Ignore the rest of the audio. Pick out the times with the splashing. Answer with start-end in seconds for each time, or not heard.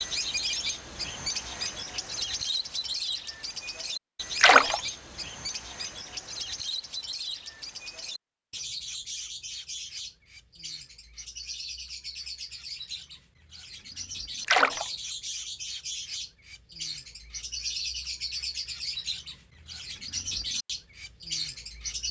4.3-4.8, 14.4-14.8.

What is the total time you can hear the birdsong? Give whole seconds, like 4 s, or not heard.
22 s.